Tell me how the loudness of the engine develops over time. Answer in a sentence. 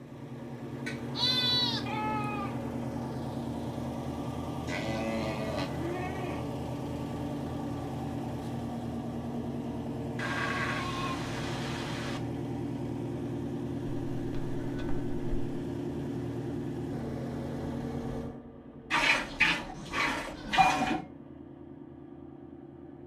The loudness of the engine goes down.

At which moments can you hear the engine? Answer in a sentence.
The engine can be heard from 0.0 to 23.0 s.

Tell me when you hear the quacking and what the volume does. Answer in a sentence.
The quacking can't be heard in this clip.